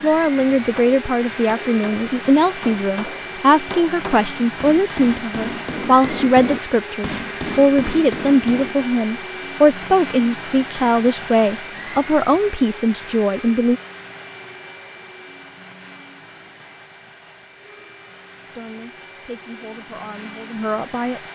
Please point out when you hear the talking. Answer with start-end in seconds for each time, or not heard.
0.0-13.8, 18.6-21.2.